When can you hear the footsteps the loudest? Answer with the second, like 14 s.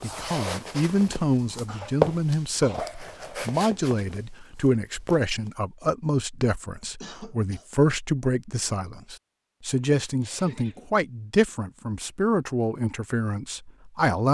2 s.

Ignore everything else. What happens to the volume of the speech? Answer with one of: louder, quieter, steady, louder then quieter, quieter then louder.
steady.